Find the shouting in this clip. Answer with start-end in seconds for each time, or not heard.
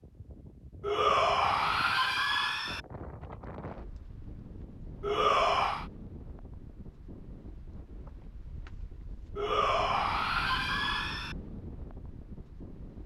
0.8-2.8, 5.0-5.8, 9.3-11.3.